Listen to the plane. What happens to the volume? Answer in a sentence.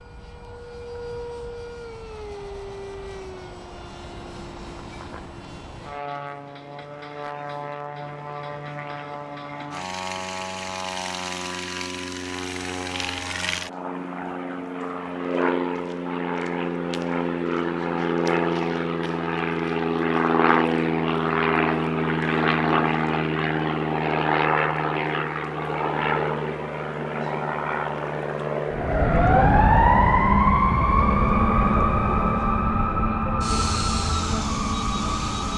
The loudness of the plane goes up, then down.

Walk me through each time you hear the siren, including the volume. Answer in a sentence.
The siren can be heard from 28.7 to 35.5 s, getting quieter.